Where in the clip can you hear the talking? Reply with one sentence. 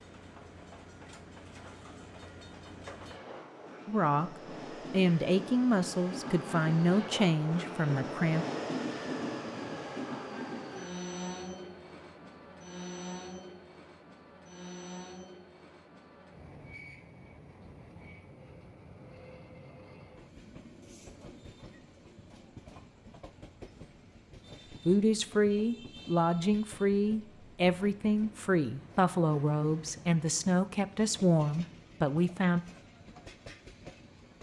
You can hear the talking from 3.9 to 4.3 s, from 4.9 to 8.4 s and from 24.9 to 32.6 s.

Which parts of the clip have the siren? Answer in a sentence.
The siren can't be heard in this clip.